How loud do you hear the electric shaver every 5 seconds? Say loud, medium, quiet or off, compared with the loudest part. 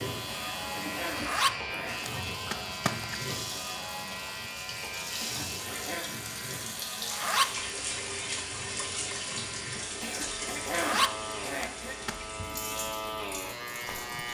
loud, medium, loud.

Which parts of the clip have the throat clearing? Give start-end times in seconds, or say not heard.
0.2-2.1, 5.2-6.1, 10.0-11.9.